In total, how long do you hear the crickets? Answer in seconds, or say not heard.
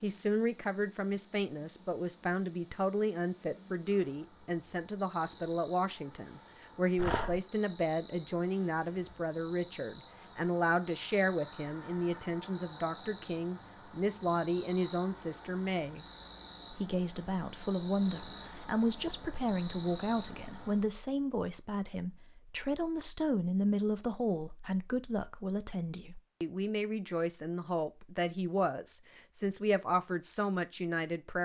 21 s.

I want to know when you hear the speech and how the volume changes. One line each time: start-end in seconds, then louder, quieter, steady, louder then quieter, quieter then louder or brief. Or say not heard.
0.0-16.1 steady
16.7-31.4 steady.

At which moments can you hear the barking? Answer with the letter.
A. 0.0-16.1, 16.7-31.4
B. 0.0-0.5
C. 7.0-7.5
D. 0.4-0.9
C.